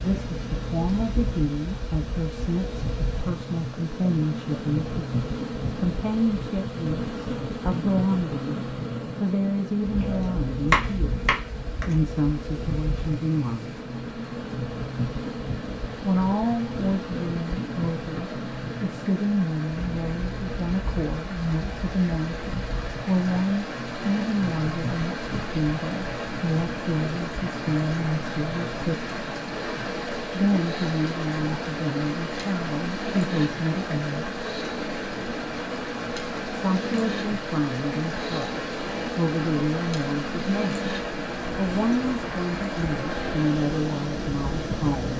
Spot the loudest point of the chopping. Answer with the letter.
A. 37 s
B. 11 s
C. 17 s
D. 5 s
B.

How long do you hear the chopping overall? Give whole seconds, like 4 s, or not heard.
2 s.